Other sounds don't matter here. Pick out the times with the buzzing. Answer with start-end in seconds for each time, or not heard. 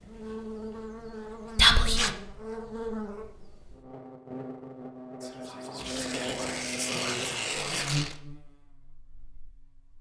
0.0-9.9.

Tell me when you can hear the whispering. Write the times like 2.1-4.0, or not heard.
1.6-2.0, 5.2-7.8.